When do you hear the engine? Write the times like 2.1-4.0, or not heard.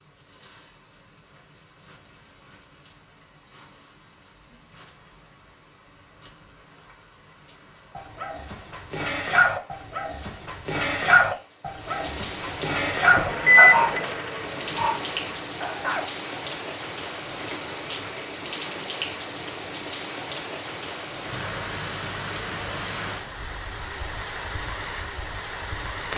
12.9-15.4.